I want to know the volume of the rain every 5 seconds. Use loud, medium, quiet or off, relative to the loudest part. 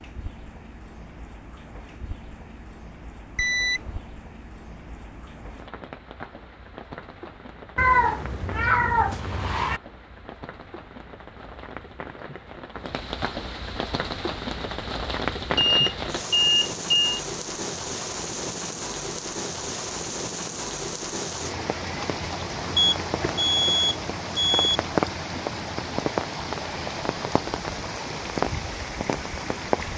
quiet, quiet, medium, loud, loud, loud.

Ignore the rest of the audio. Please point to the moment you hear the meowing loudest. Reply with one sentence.
The loudest moment of the meowing is at 8 seconds.